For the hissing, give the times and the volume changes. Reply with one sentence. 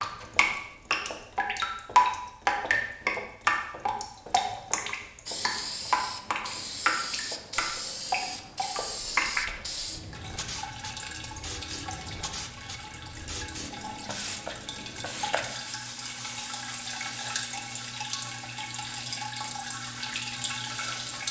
You can hear the hissing from 5.2 to 21.2 s, getting quieter.